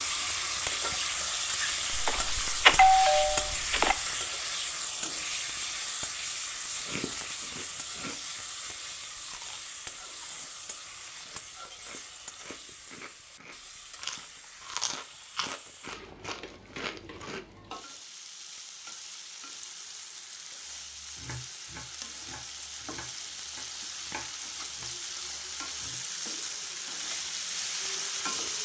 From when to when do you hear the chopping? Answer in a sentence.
You can hear the chopping from 20.6 to 26.0 s.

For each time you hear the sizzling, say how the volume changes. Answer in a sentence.
The sizzling can be heard from 0.0 to 28.6 s, getting quieter then louder.